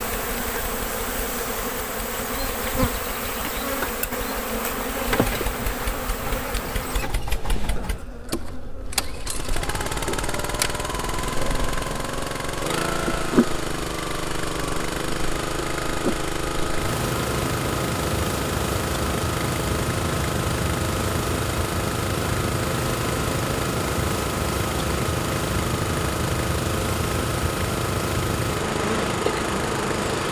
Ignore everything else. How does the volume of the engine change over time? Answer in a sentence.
The loudness of the engine goes up.